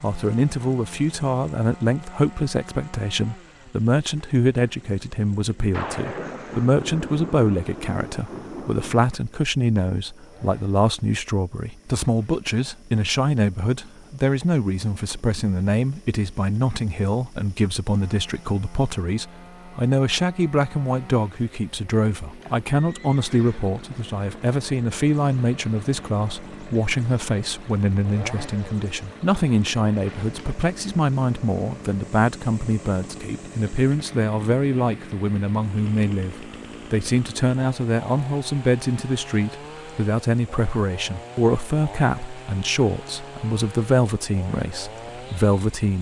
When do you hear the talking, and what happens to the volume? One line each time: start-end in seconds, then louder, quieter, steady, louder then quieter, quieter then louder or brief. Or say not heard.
0.0-45.9 steady.